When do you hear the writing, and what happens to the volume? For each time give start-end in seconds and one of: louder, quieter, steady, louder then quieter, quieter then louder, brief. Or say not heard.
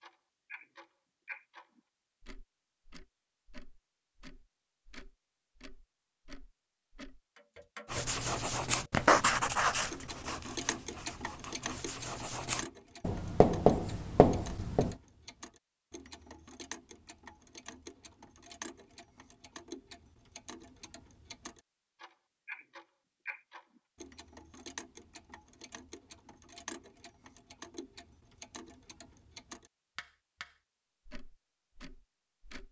7.9-14.9 quieter then louder.